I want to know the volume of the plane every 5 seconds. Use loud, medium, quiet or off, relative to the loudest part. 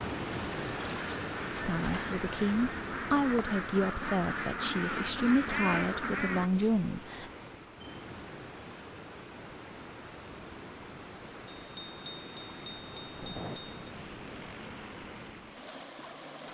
off, off, loud, medium.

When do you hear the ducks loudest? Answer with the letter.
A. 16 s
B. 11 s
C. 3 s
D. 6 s
D.